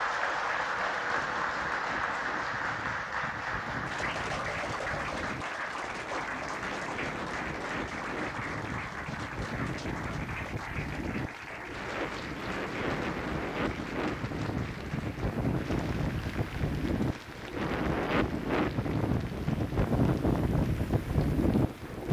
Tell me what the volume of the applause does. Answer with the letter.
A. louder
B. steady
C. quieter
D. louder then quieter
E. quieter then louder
C.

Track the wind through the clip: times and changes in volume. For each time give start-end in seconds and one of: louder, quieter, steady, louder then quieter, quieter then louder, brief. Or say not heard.
0.0-22.0 louder.